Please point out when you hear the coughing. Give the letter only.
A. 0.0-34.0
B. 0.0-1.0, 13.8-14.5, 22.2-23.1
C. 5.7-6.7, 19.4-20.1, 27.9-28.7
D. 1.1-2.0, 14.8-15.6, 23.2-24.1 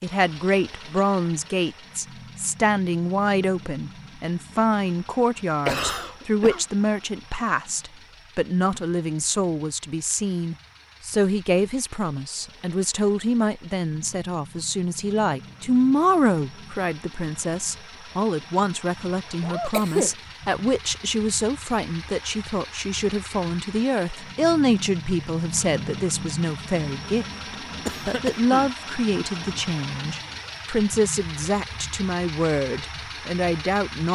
C.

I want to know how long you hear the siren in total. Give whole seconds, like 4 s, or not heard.
not heard.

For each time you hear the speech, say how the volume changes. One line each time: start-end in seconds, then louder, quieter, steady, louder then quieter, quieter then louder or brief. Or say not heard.
0.0-34.0 steady.